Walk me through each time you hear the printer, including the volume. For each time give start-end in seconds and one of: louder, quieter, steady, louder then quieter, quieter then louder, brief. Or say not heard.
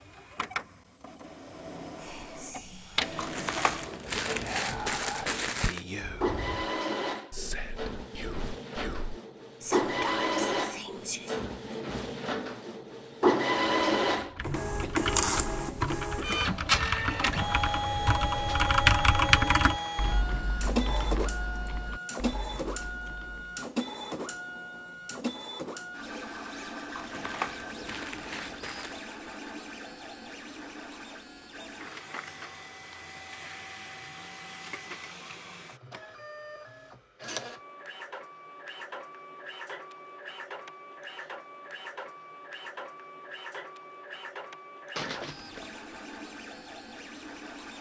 0.0-47.7 louder then quieter.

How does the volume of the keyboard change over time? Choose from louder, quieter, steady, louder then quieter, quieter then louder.
louder then quieter.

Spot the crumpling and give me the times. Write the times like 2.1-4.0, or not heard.
3.1-5.8, 26.9-29.1, 45.0-45.8.